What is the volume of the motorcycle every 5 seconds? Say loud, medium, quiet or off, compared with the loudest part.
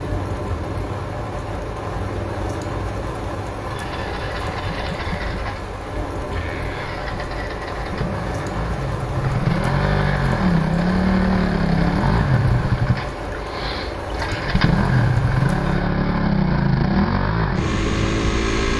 quiet, medium, loud, loud.